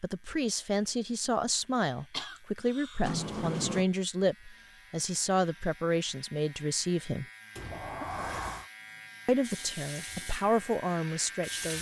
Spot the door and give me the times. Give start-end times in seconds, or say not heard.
3.0-3.9, 7.5-8.7.